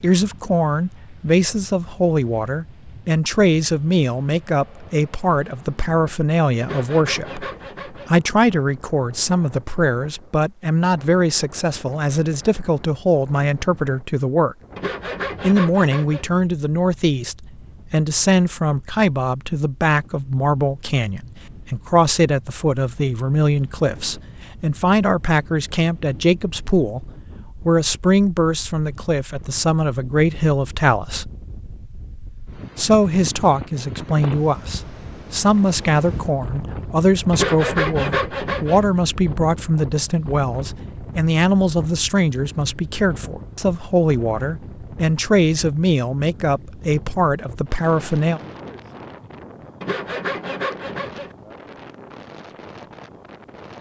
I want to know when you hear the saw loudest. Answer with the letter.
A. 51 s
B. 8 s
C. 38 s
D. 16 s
C.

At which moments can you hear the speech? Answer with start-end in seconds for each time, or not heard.
0.0-14.6, 15.4-31.3, 32.8-48.4.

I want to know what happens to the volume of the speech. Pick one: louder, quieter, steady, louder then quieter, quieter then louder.
steady.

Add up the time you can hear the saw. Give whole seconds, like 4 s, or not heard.
6 s.